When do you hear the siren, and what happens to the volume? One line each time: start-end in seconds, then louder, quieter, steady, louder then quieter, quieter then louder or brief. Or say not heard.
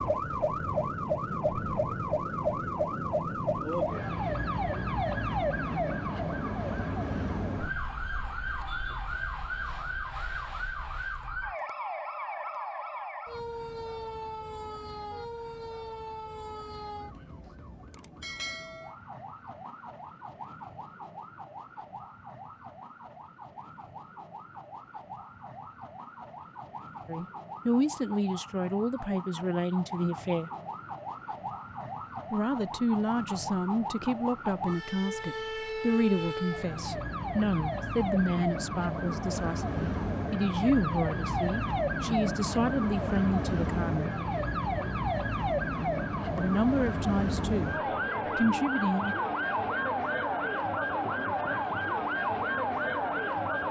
0.0-53.6 quieter then louder.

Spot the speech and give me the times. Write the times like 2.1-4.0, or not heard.
27.1-30.5, 32.3-44.1, 46.4-47.8, 48.4-49.1.